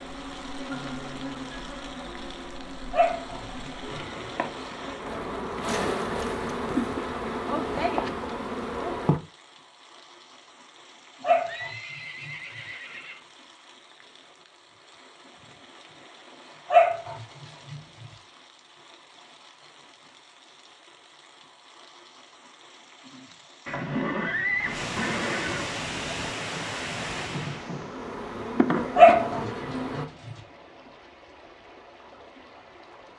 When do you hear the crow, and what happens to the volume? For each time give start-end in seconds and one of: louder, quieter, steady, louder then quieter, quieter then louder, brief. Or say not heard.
not heard.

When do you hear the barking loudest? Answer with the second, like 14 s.
29 s.